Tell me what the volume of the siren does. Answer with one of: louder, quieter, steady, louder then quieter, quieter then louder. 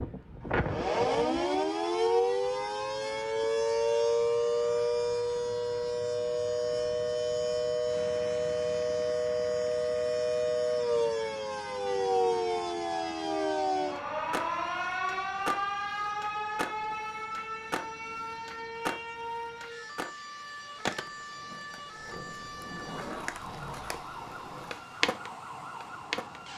quieter.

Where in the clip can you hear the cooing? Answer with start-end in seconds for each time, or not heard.
not heard.